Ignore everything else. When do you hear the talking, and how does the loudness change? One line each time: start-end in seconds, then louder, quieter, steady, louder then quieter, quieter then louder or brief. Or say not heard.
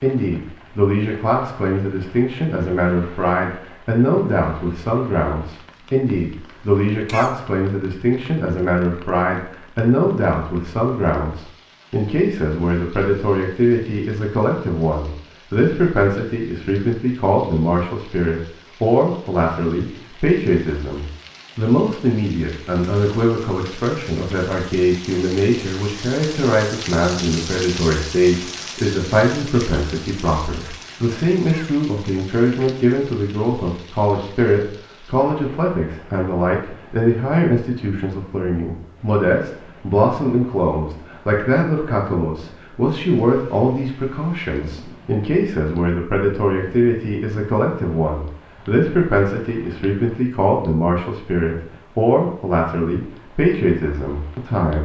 0.0-54.8 steady.